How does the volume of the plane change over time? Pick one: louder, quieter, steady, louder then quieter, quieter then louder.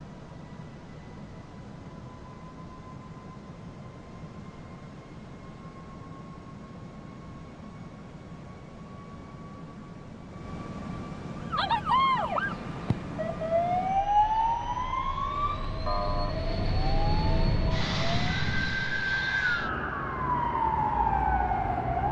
louder.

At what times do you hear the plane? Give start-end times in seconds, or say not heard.
0.0-22.0.